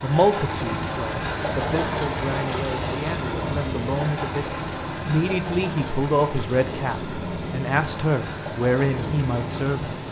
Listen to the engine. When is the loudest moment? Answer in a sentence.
The volume of the engine peaks at 2 seconds.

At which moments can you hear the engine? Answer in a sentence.
You can hear the engine from 0.0 to 10.0 s.